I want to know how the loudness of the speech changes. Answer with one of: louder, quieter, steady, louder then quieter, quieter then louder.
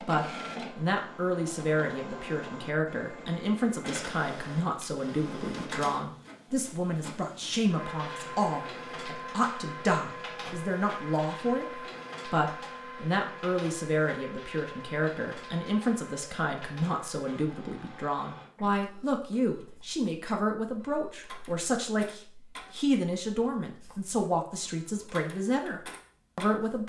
steady.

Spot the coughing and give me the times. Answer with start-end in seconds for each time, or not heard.
not heard.